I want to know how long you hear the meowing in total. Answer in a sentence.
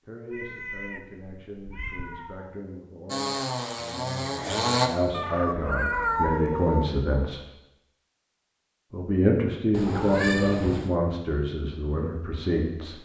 The meowing can be heard for 5 seconds in total.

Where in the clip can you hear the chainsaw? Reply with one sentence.
You can hear the chainsaw from 3.0 to 4.9 s.